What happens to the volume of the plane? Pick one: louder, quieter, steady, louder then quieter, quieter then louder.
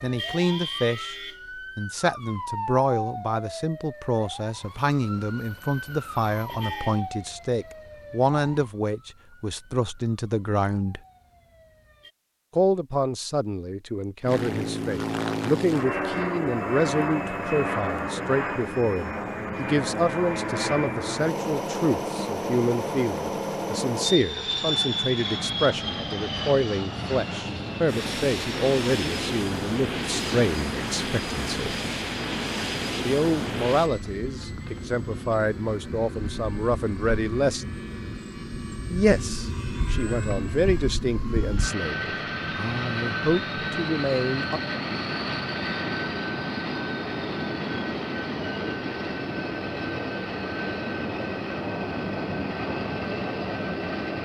steady.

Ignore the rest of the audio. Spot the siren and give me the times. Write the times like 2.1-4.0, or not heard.
0.0-12.2.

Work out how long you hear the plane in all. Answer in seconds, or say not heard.
40 s.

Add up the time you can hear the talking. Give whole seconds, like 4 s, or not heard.
40 s.